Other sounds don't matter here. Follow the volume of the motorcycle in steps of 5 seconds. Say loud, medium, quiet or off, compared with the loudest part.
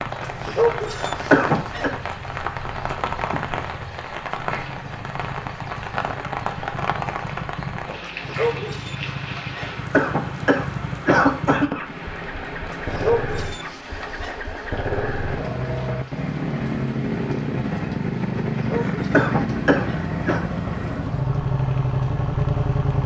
quiet, medium, medium, loud, loud.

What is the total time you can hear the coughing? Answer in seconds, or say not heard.
5 s.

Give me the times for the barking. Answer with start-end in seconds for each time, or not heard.
0.2-1.9, 8.0-9.7, 12.7-14.3, 18.5-20.0.